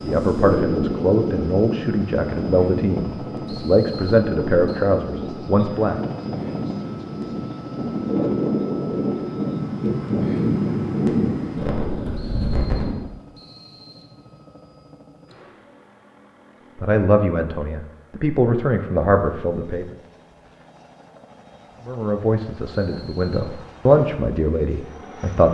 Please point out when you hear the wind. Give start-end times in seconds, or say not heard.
0.0-13.0.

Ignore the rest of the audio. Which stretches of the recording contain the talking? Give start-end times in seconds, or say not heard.
0.0-6.0, 16.8-19.9, 21.9-25.4.